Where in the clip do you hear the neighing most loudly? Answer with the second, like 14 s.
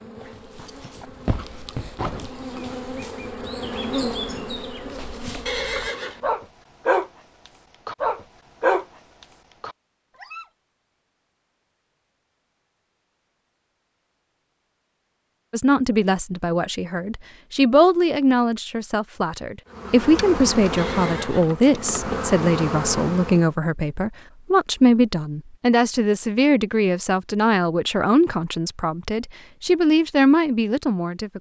6 s.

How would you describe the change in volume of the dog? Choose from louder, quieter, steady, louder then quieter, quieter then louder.
quieter then louder.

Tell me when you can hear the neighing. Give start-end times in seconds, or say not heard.
5.5-6.2, 20.8-21.6.